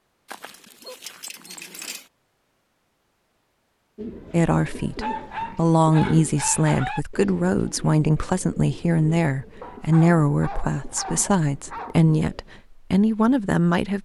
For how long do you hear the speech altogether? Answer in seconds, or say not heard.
10 s.